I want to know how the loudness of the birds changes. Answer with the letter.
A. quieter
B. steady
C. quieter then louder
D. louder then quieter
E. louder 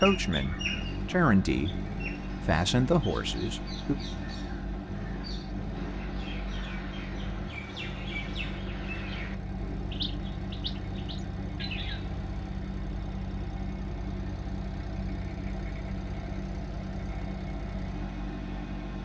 C.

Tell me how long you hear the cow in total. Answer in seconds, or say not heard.
not heard.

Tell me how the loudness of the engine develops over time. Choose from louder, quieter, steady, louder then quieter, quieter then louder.
steady.